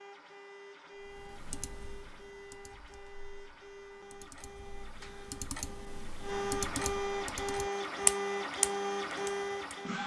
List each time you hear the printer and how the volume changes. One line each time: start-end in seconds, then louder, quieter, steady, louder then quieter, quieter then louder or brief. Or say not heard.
0.0-10.0 louder.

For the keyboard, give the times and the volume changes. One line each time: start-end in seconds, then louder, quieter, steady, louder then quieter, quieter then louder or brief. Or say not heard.
1.0-9.8 quieter then louder.